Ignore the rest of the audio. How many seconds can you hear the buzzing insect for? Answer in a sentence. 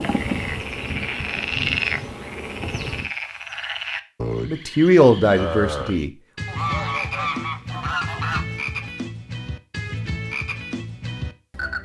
The buzzing insect can be heard for 3 seconds in total.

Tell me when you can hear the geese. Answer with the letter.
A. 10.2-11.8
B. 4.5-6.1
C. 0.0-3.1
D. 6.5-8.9
D.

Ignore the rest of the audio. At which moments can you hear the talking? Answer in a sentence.
The talking can be heard from 4.5 to 6.1 s.